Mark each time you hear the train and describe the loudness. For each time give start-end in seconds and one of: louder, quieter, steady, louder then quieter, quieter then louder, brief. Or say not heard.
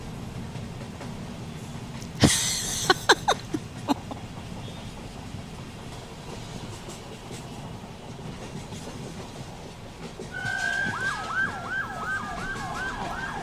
0.0-13.3 steady.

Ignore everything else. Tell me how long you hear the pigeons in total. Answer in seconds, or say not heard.
not heard.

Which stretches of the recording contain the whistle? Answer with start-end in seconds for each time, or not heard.
not heard.